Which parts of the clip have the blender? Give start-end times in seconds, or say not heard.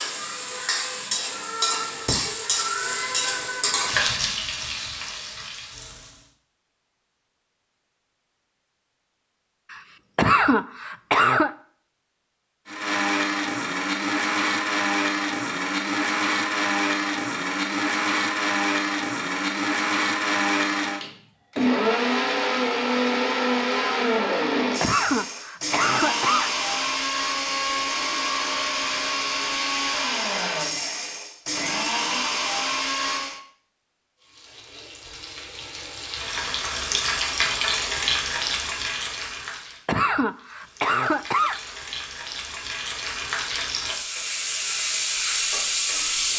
12.7-33.4.